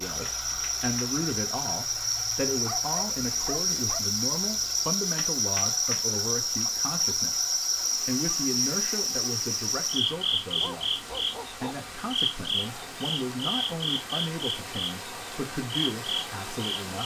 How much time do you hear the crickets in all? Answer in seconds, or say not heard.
17 s.